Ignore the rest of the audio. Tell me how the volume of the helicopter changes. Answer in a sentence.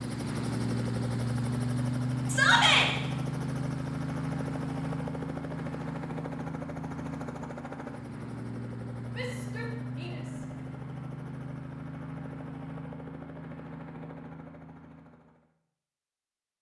The loudness of the helicopter goes down.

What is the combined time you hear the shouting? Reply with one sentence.
You can hear the shouting for 2 seconds altogether.